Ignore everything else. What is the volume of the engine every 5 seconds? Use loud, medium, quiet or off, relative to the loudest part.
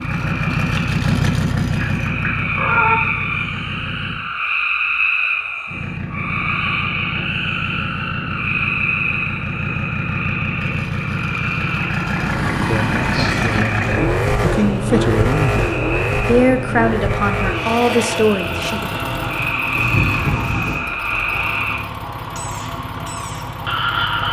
loud, medium, loud, loud, medium.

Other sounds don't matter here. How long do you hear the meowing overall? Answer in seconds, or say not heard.
4 s.